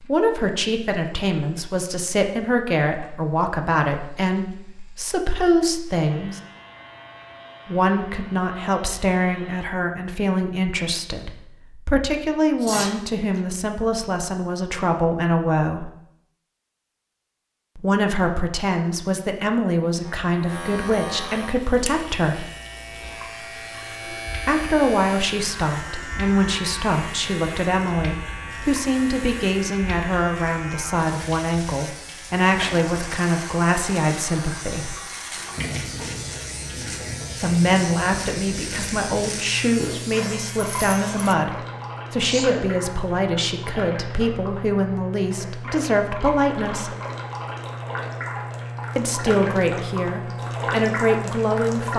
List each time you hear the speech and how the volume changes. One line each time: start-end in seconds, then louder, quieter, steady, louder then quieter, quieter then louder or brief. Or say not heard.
0.0-6.4 steady
7.7-15.9 steady
17.8-22.4 steady
24.4-35.0 steady
37.4-47.0 steady
49.0-51.9 brief.